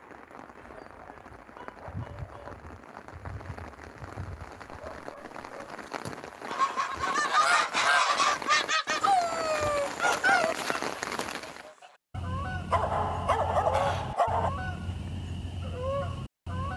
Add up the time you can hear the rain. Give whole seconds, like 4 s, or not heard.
12 s.